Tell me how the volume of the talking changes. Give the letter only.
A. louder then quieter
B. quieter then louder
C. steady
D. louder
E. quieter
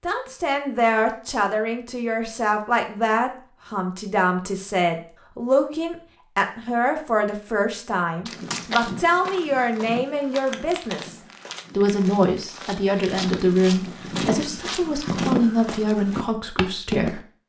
C.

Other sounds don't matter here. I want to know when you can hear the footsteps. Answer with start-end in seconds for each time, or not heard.
8.2-17.2.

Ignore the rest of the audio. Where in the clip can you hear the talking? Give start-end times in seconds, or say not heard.
0.0-17.2.